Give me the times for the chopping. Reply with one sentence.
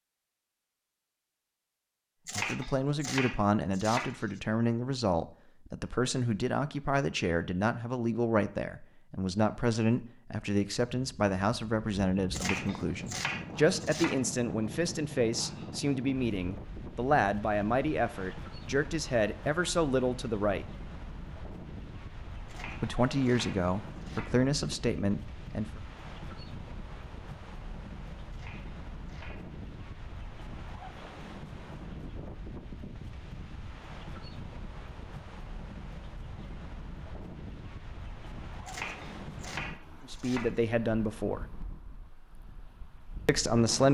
The chopping can be heard from 2.2 to 4.4 s, from 12.3 to 14.2 s, from 22.4 to 24.5 s, from 28.3 to 29.4 s and from 38.6 to 40.6 s.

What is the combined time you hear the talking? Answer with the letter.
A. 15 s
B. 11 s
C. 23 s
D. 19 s
C.